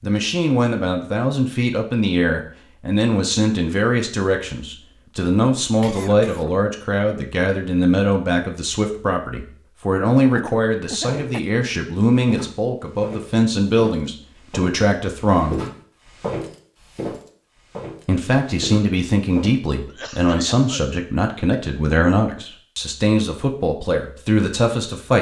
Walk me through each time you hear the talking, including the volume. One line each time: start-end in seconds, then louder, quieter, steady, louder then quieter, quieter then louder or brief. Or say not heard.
0.0-15.6 steady
18.1-25.1 steady.